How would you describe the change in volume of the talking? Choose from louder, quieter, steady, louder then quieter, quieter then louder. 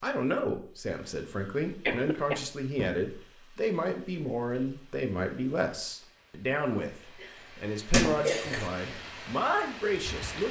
steady.